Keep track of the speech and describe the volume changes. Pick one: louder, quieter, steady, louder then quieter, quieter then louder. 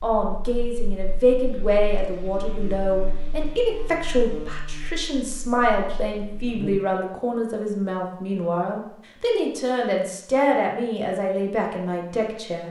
steady.